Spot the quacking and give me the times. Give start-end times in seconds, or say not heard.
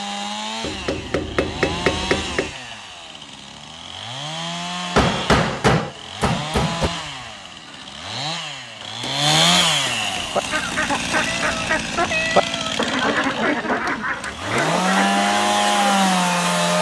10.2-15.9.